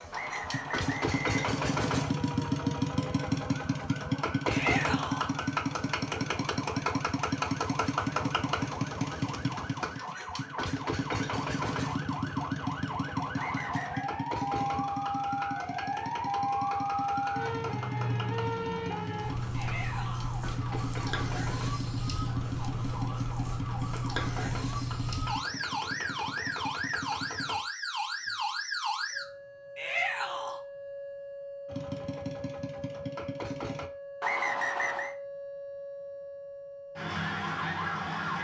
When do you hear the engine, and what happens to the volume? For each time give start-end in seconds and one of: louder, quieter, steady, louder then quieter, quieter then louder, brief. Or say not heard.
0.0-27.6 quieter
31.6-33.9 brief.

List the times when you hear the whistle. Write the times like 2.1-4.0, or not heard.
0.1-2.1, 13.3-14.1, 34.2-35.1.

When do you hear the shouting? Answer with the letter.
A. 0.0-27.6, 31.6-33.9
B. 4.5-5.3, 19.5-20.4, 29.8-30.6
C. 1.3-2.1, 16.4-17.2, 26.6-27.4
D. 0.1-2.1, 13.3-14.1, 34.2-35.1
B.